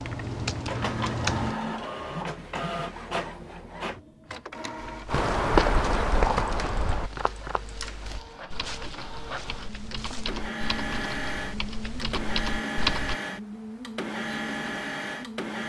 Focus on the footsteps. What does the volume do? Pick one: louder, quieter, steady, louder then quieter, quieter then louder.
quieter.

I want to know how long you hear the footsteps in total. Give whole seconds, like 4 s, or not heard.
5 s.